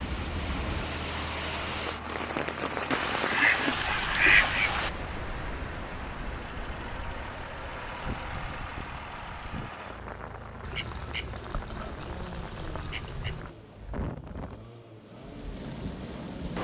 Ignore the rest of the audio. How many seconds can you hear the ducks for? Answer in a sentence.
The ducks can be heard for 5 seconds in total.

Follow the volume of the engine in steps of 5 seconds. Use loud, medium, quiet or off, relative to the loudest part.
loud, loud, medium, medium.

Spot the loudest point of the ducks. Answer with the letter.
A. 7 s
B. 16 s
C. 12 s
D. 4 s
D.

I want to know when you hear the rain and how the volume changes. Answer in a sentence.
You can hear the rain from 0.0 to 16.5 s, getting quieter.